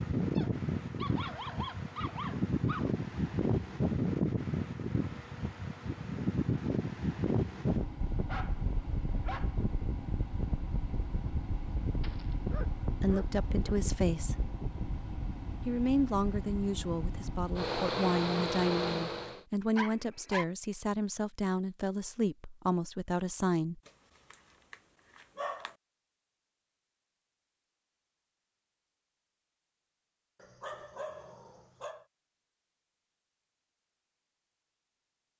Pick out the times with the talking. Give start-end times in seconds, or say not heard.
13.0-14.3, 15.7-23.8.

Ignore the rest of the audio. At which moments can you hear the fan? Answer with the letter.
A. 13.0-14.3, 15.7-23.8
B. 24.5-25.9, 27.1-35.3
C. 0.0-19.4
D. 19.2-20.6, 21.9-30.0
C.